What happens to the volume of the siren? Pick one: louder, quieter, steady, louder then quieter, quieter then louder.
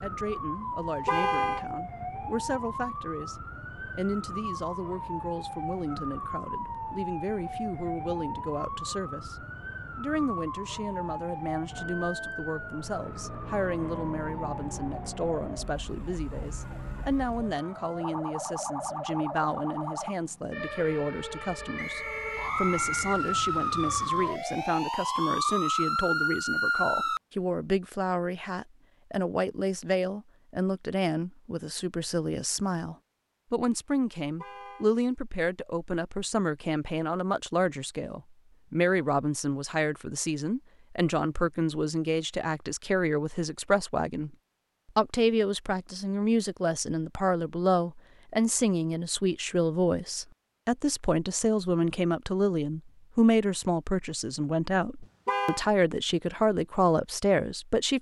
louder.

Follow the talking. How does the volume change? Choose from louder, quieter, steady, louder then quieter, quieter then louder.
louder.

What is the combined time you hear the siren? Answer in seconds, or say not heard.
27 s.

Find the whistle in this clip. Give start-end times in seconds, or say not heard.
21.8-23.2.